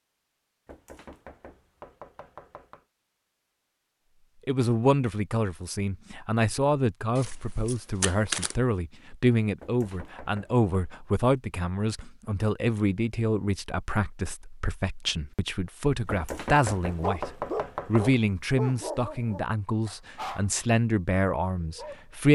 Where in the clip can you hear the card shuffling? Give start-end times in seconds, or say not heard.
7.2-8.6.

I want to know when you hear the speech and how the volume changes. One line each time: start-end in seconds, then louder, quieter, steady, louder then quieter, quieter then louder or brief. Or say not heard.
4.5-22.2 steady.